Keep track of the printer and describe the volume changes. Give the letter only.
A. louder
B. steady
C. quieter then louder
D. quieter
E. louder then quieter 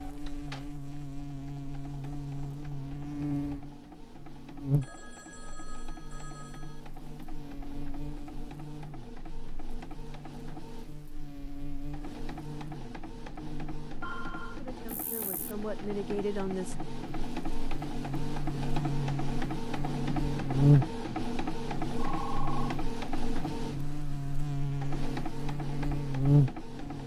A.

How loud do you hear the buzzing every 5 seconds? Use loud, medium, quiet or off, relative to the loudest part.
medium, quiet, quiet, medium, loud, loud.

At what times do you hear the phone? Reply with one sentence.
The phone can be heard from 4.8 to 6.8 s, from 14.0 to 14.6 s and from 21.9 to 22.8 s.